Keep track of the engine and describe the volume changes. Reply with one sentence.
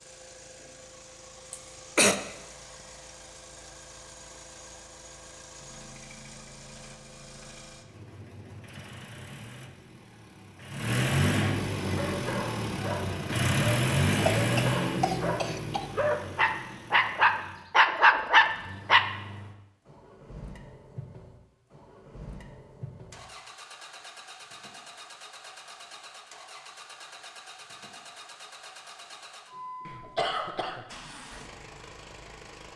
The loudness of the engine goes up, then down.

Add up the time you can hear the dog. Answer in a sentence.
The dog can be heard for 7 seconds in total.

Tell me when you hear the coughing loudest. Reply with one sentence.
The volume of the coughing peaks at 2 seconds.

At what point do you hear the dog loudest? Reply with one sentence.
The loudest moment of the dog is at 18 seconds.